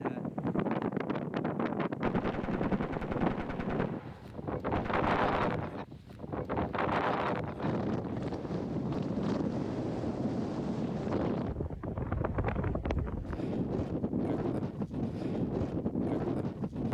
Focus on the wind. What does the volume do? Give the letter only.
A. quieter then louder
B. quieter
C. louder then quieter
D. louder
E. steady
E.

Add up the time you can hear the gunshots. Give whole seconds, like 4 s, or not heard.
4 s.